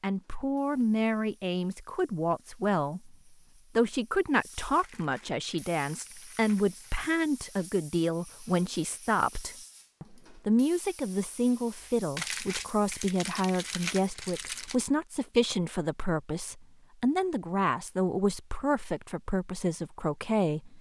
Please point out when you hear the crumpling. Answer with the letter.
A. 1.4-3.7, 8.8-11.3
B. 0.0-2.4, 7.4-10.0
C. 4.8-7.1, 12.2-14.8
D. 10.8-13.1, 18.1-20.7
C.